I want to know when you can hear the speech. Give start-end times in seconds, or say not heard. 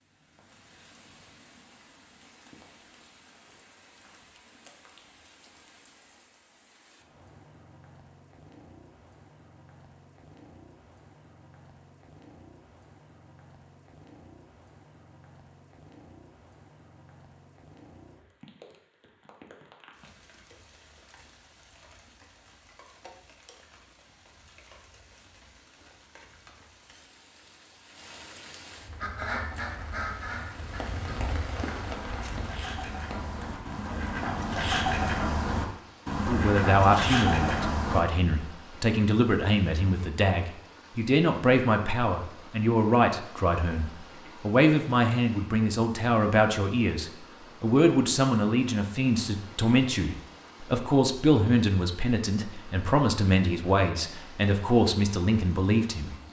36.2-56.1.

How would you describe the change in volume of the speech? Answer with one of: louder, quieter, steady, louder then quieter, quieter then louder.
steady.